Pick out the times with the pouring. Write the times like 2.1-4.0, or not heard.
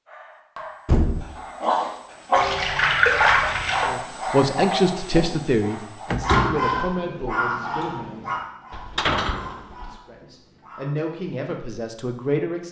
2.4-3.9.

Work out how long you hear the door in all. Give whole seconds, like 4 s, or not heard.
2 s.